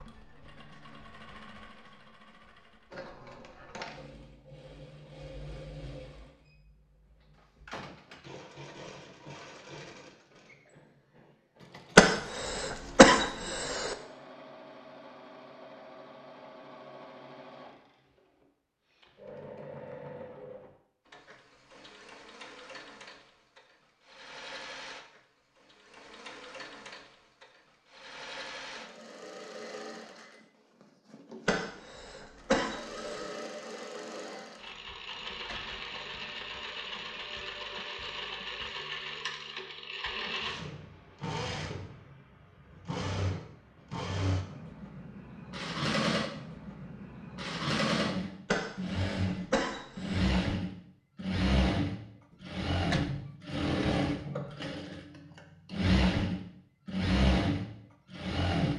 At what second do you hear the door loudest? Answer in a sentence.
The volume of the door peaks at 53 seconds.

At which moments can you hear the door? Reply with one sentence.
You can hear the door from 7.3 to 8.4 s, from 35.1 to 35.9 s and from 52.3 to 53.2 s.